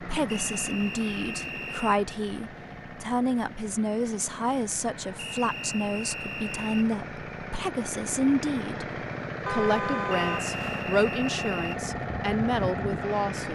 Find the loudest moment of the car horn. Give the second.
10 s.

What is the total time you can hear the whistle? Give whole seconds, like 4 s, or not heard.
5 s.